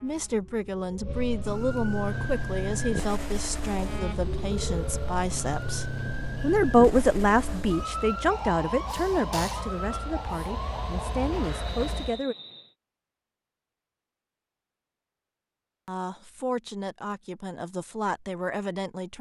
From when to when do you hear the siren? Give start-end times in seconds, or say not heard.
0.0-11.4.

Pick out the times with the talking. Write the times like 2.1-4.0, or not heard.
0.0-12.3, 15.8-19.1.